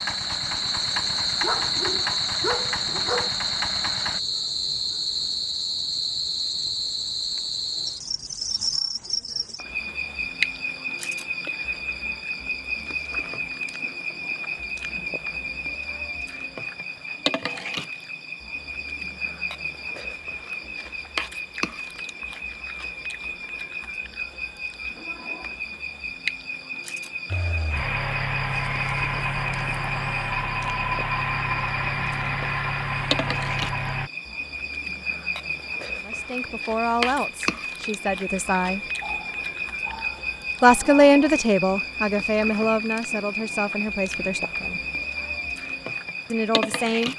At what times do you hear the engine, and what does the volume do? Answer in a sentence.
You can hear the engine from 0.0 to 4.2 s, at a steady volume; and from 27.3 to 34.1 s, at a steady volume.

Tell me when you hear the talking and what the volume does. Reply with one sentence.
You can hear the talking briefly from 36.0 to 38.9 s; from 40.6 to 44.8 s, getting quieter; and briefly from 46.3 to 47.1 s.